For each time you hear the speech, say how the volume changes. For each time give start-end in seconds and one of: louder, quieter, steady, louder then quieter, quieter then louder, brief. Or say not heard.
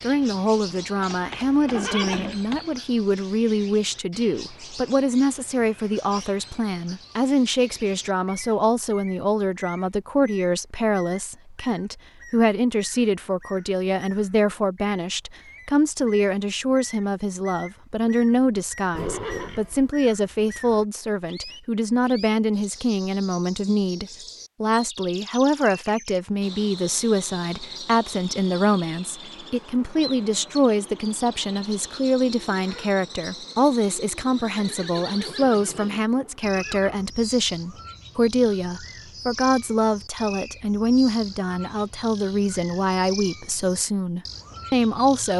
0.0-45.3 steady.